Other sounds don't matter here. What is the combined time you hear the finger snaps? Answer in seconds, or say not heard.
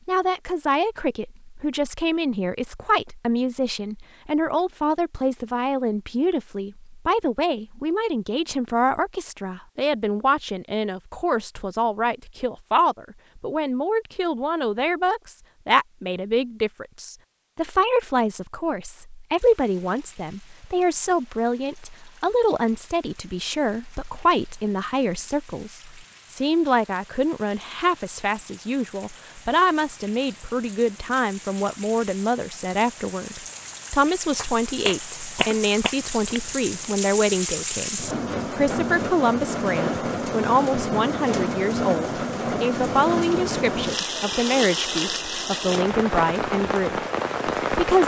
2 s.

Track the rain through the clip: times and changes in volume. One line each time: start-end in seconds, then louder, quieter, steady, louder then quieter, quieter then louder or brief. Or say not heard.
19.4-48.0 louder.